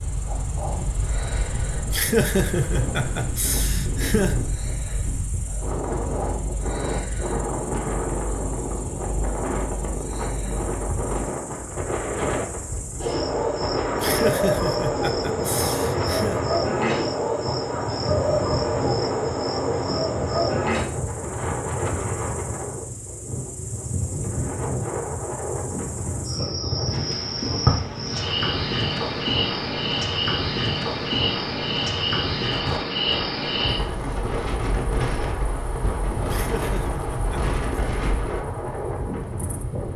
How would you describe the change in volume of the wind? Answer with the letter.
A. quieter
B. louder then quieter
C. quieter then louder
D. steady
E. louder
D.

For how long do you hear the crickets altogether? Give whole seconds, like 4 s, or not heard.
40 s.